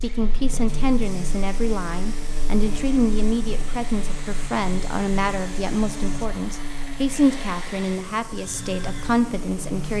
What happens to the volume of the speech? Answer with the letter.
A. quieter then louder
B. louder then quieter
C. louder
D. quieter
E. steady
E.